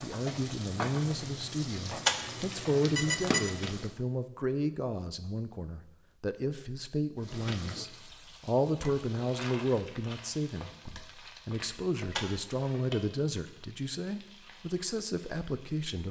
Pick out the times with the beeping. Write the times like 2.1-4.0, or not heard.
2.0-3.5, 12.2-12.8.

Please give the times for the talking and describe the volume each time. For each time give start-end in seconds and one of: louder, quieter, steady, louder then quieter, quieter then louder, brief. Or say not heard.
0.0-16.0 steady.